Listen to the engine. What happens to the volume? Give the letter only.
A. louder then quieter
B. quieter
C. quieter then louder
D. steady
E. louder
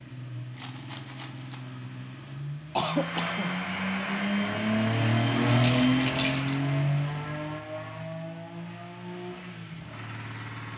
A.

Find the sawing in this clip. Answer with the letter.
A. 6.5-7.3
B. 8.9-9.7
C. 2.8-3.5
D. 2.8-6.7
D.